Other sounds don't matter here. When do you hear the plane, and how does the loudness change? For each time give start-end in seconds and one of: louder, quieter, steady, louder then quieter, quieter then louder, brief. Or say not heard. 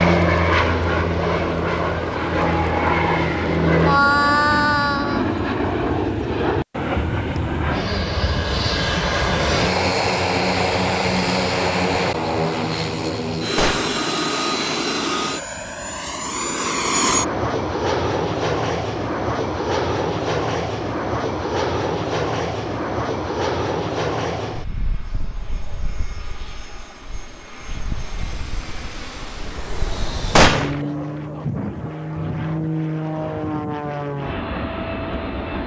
0.0-35.6 quieter.